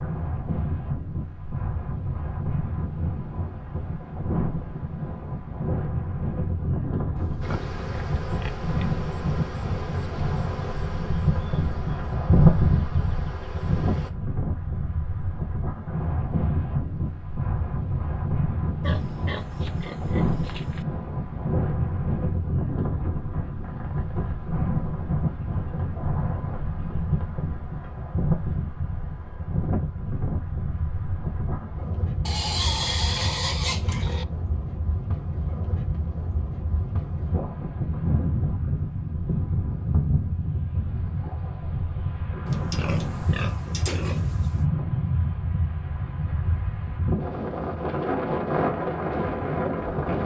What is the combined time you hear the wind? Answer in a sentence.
You can hear the wind for 50 seconds altogether.